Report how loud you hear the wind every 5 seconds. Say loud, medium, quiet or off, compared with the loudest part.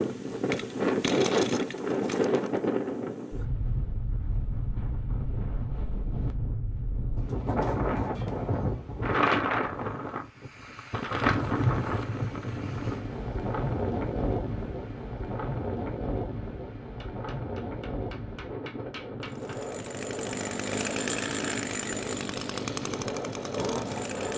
loud, loud, loud, medium, medium.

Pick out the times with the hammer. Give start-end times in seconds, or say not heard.
17.0-19.6.